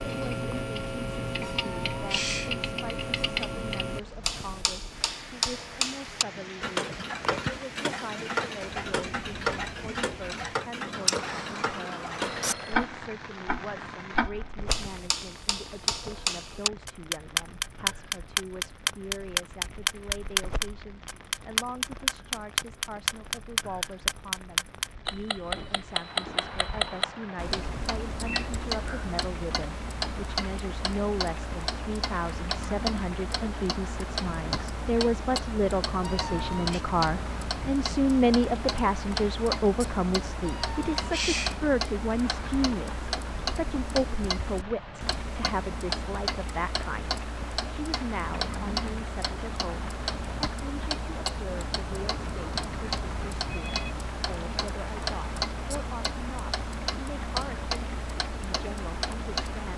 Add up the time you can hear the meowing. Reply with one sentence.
The meowing can be heard for 3 seconds in total.